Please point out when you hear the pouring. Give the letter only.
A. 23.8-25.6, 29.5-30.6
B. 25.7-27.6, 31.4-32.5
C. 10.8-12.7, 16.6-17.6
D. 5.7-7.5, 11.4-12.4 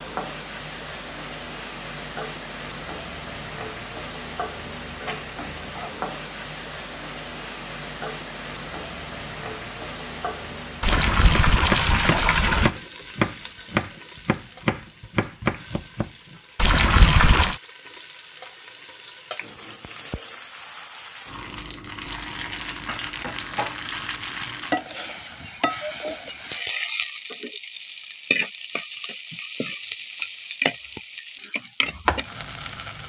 C.